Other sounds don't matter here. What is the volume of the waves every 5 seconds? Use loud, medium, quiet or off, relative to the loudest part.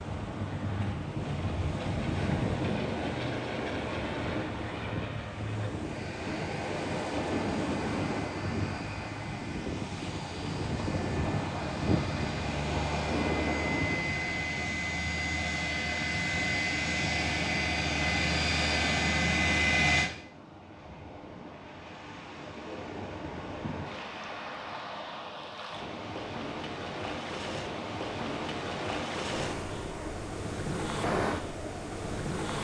loud, loud, loud, medium, medium, loud, loud.